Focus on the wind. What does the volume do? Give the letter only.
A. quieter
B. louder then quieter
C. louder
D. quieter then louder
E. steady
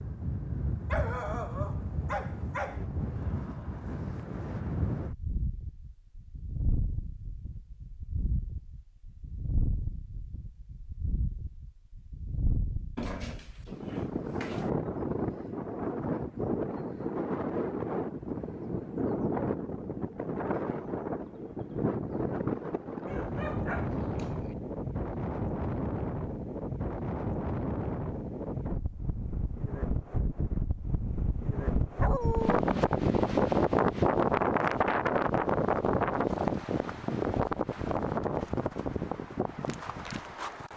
C.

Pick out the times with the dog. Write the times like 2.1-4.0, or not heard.
0.8-2.9, 12.9-14.7, 23.1-24.6, 31.9-32.6.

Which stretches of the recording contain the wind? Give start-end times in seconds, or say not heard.
0.0-40.7.